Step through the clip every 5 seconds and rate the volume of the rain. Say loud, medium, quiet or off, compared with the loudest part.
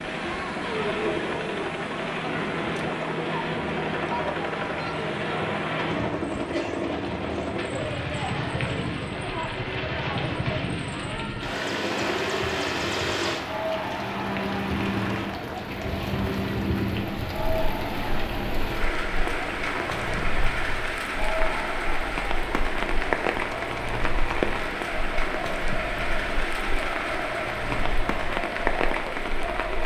medium, medium, medium, loud, loud, loud.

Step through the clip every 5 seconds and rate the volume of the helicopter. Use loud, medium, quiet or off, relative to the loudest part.
loud, loud, loud, loud, medium, medium.